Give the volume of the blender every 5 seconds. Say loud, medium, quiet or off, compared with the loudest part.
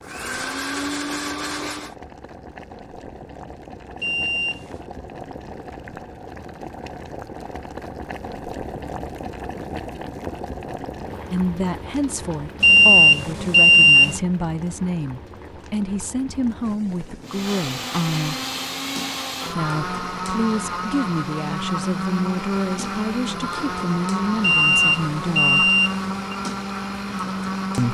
loud, off, off, loud, loud, loud.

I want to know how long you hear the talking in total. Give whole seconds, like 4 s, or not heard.
13 s.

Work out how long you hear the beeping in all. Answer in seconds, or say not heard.
4 s.